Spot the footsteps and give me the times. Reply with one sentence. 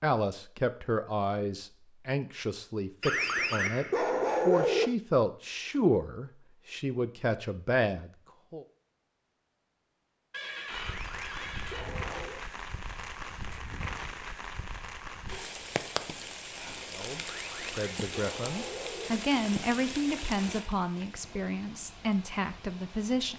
The footsteps can't be heard in this clip.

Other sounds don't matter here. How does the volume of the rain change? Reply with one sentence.
The loudness of the rain goes down.